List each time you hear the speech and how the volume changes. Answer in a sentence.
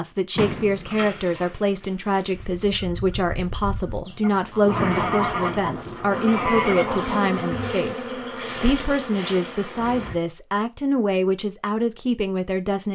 You can hear the speech from 0.0 to 12.8 s, at a steady volume.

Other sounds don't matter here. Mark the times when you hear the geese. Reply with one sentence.
You can hear the geese from 2.4 to 7.8 s.